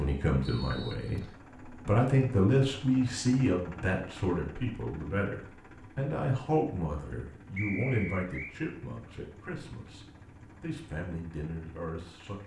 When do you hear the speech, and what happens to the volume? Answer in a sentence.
You can hear the speech from 0.0 to 12.4 s, getting quieter.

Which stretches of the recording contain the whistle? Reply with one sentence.
The whistle can be heard from 0.4 to 1.4 s and from 7.5 to 8.6 s.